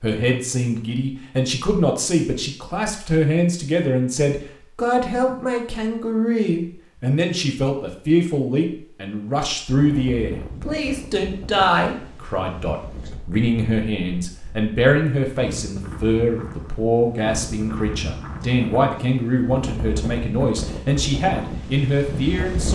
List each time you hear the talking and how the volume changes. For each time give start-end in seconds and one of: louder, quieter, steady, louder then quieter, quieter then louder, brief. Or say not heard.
0.0-22.7 steady.